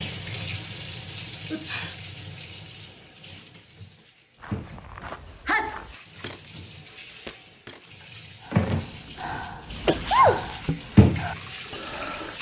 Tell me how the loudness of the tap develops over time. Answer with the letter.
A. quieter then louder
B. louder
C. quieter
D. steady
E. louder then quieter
A.